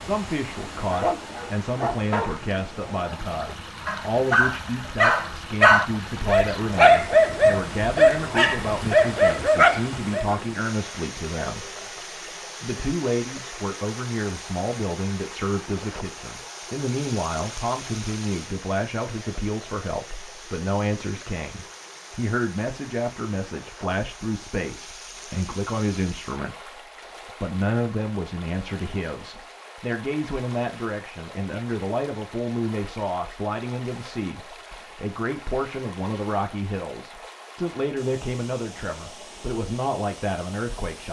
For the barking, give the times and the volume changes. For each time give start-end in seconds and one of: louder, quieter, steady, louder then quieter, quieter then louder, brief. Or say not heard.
0.8-10.3 louder.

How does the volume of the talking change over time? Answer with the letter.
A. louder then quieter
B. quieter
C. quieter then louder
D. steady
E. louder
D.